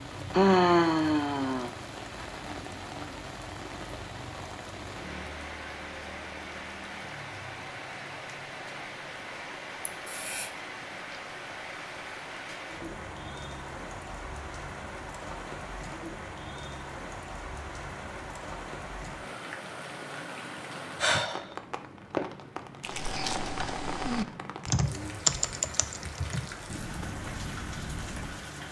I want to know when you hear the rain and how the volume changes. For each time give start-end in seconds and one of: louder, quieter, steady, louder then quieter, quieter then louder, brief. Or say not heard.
0.0-28.6 steady.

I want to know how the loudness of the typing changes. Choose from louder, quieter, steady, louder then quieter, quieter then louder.
louder then quieter.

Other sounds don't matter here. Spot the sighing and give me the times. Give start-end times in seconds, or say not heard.
0.3-1.7, 9.8-10.5, 21.0-21.4.